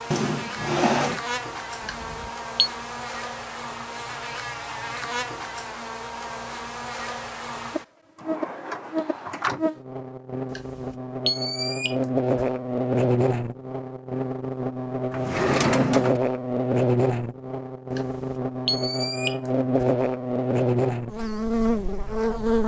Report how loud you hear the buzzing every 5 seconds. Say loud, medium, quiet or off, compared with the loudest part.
medium, medium, loud, loud, loud.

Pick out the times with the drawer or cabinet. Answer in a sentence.
You can hear the drawer or cabinet from 0.1 to 1.2 s, from 8.2 to 9.6 s and from 15.1 to 16.2 s.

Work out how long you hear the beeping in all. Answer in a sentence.
You can hear the beeping for 5 seconds altogether.